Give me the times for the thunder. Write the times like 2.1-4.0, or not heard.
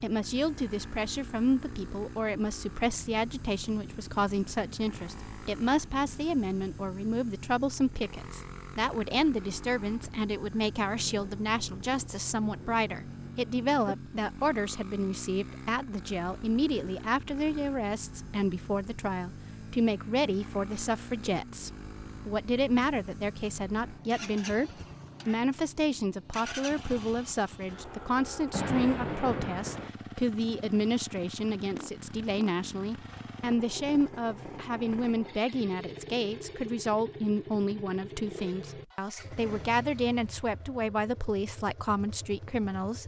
10.8-13.9, 28.5-29.9.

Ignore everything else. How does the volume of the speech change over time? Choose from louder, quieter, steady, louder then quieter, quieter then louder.
steady.